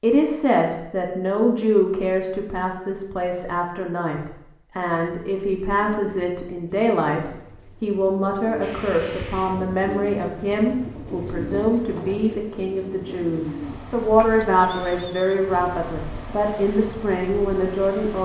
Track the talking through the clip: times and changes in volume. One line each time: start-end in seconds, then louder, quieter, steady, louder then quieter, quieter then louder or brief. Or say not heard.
0.0-18.2 steady.